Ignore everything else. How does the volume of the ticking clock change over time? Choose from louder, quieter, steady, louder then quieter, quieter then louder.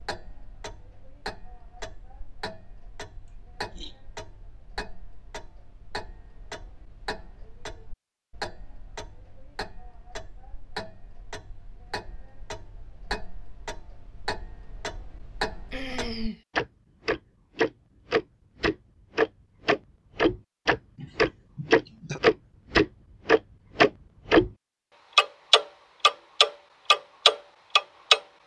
louder.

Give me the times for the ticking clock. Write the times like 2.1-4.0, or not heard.
0.0-24.5, 25.1-28.2.